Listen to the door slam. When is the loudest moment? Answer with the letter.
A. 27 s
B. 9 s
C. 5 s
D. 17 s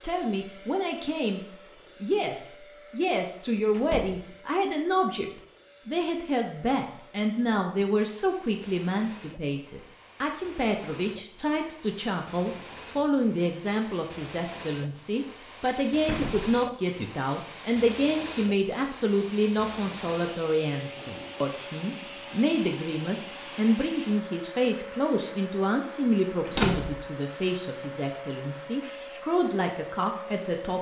A.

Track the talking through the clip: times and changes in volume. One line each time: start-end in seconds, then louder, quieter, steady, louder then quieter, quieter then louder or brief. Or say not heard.
0.0-1.4 brief
2.0-30.7 steady.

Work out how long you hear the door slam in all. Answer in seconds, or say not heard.
2 s.